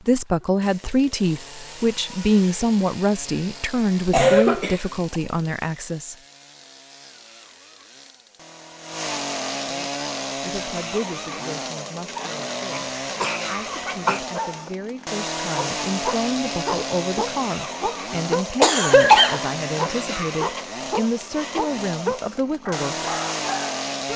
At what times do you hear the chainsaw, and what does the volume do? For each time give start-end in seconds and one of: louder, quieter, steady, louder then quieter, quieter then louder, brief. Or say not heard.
0.2-24.1 louder.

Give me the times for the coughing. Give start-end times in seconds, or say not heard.
4.1-4.8, 12.7-14.2, 18.6-19.9.